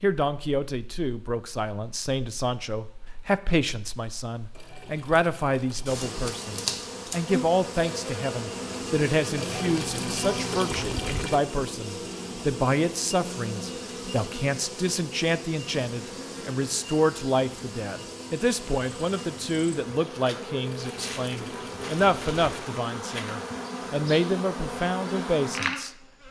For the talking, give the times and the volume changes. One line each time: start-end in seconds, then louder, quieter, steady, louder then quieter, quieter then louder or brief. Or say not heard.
0.0-26.2 steady.